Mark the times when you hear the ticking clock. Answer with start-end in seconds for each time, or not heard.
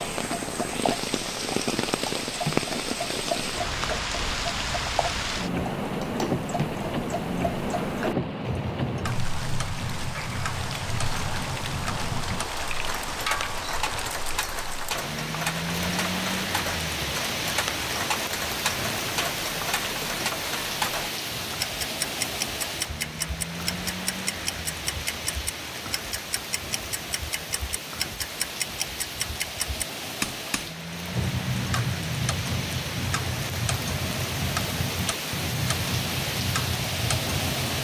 0.0-37.7.